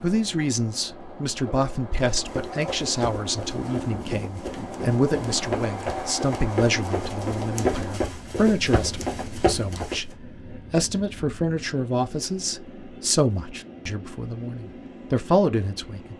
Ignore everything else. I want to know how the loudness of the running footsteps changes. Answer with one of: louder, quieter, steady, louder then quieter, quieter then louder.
louder.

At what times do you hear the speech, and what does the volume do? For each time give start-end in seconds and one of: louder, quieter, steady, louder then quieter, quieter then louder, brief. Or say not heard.
0.0-16.1 steady.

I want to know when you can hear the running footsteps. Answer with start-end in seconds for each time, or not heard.
2.1-10.2.